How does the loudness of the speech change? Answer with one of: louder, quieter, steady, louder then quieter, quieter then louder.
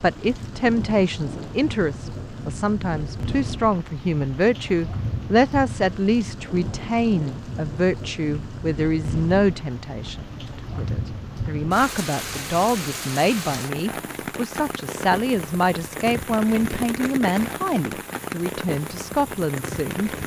steady.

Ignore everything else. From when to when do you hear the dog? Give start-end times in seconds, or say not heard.
not heard.